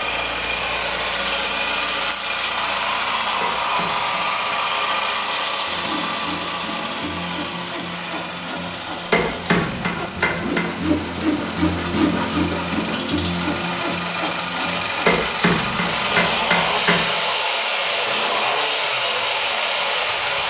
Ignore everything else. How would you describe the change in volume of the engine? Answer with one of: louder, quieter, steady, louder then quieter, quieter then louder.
quieter then louder.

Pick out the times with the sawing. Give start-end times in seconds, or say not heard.
5.7-15.2.